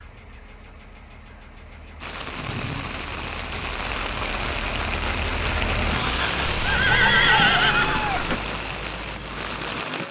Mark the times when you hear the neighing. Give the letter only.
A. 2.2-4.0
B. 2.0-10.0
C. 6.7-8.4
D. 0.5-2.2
C.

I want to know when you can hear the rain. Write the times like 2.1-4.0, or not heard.
2.0-10.0.